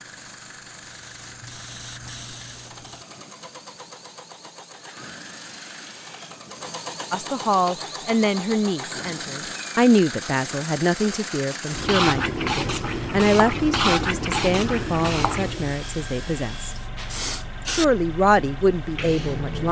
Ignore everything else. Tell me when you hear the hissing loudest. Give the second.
14 s.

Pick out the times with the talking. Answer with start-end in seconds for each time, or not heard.
7.1-19.6.